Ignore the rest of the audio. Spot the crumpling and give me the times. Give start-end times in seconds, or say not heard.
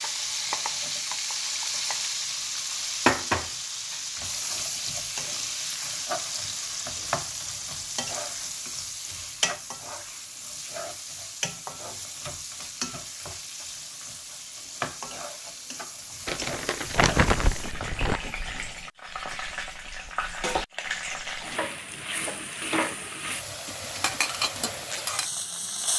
16.2-18.2.